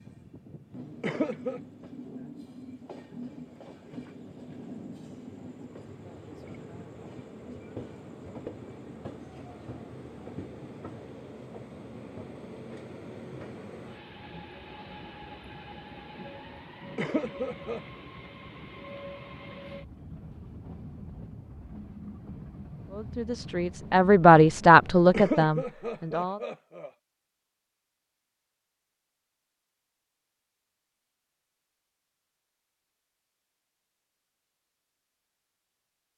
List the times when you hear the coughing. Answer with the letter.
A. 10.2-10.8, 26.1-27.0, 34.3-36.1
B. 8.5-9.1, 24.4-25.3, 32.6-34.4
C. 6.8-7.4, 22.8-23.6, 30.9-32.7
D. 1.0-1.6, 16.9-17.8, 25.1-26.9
D.